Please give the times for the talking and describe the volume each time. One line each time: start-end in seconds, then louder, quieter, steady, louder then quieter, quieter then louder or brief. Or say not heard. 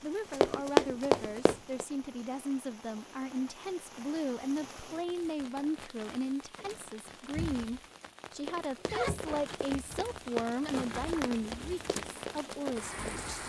0.0-13.3 steady.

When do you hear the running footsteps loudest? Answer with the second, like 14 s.
1 s.